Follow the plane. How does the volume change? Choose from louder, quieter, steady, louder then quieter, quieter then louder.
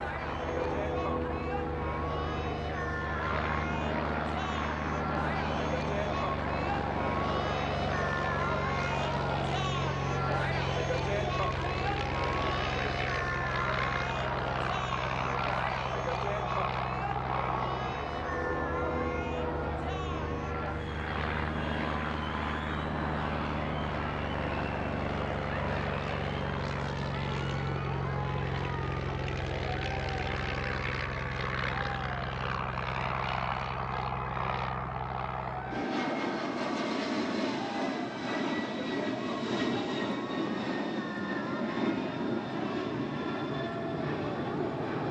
steady.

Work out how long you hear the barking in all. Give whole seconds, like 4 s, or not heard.
not heard.